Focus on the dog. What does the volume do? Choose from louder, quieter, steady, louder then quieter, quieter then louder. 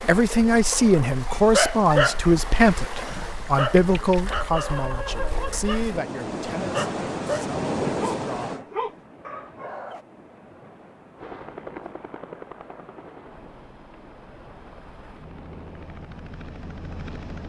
quieter.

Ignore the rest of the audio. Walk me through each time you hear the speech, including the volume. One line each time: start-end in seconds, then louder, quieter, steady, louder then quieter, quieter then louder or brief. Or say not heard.
0.1-8.6 quieter.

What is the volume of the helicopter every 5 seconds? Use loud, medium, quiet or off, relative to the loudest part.
off, off, loud, loud.